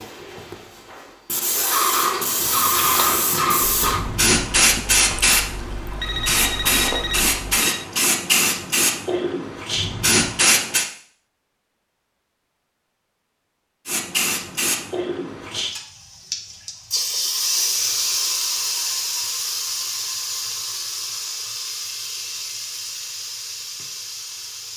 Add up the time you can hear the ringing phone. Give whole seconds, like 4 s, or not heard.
2 s.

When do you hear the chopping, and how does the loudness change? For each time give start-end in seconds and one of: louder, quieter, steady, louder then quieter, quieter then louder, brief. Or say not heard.
not heard.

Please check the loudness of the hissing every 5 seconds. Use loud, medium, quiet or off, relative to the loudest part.
loud, loud, loud, loud, medium.